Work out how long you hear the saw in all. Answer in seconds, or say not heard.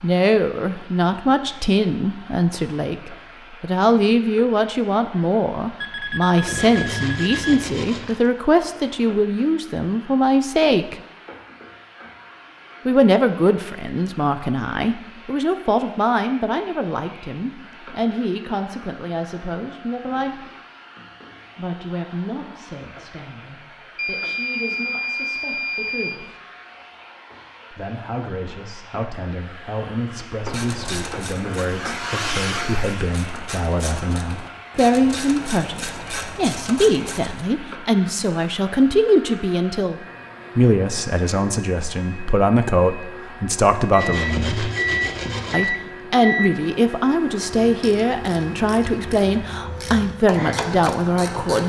4 s.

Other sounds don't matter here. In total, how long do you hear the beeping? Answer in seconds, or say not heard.
7 s.